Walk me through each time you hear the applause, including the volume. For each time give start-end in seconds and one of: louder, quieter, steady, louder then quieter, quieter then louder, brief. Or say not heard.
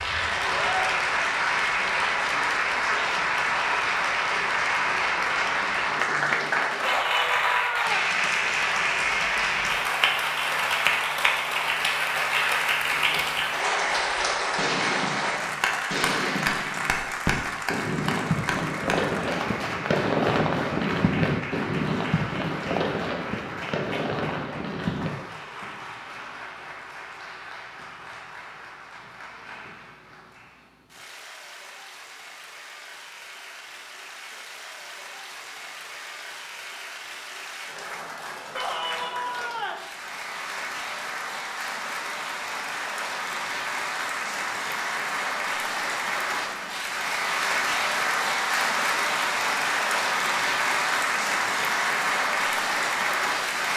0.0-53.7 quieter then louder.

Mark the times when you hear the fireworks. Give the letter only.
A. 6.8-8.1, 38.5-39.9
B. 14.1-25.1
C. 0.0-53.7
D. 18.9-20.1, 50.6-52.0
B.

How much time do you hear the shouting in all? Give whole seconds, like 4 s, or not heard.
3 s.